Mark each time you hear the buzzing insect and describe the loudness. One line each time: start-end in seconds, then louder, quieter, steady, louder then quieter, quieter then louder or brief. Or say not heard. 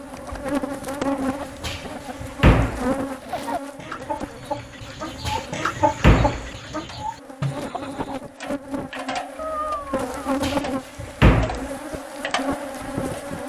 0.0-13.4 quieter then louder.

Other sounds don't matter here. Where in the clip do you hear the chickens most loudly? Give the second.
6 s.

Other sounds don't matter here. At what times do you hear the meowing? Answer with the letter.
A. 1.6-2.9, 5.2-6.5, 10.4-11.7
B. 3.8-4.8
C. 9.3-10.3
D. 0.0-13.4
C.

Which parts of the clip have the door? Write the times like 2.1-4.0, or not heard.
1.6-2.9, 5.2-6.5, 10.4-11.7.